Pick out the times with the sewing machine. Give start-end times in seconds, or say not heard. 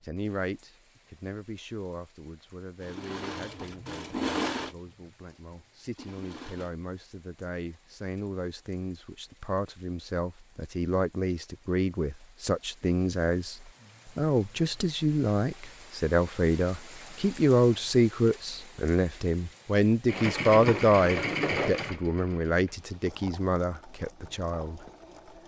2.8-6.7, 20.1-25.4.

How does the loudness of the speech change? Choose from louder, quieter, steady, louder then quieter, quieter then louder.
louder.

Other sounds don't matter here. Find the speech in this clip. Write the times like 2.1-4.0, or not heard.
0.0-13.6, 14.2-24.8.